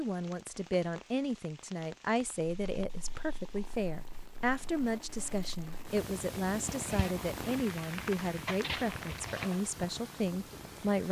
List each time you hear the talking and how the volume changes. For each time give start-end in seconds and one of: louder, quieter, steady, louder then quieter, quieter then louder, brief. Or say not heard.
0.0-11.0 steady.